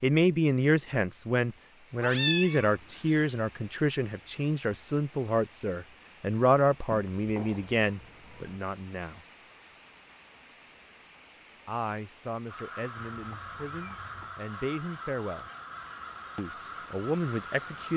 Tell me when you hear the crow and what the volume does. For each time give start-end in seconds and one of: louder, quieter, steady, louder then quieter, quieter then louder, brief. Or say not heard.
12.4-17.9 steady.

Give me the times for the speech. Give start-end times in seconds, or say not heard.
0.0-9.2, 11.7-15.5, 16.4-17.9.